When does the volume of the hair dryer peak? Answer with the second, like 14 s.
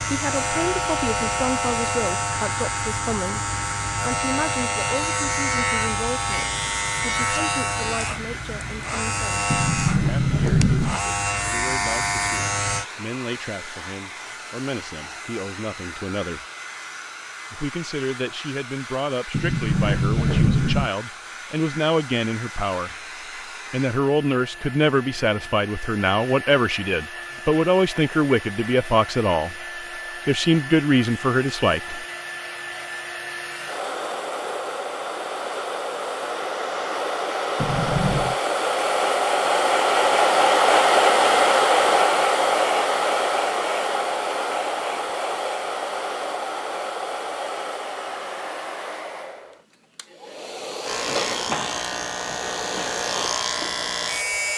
41 s.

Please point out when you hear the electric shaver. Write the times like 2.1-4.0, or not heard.
0.0-12.8, 50.8-54.5.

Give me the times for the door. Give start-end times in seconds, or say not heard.
9.5-11.0, 19.3-20.9, 37.6-38.4.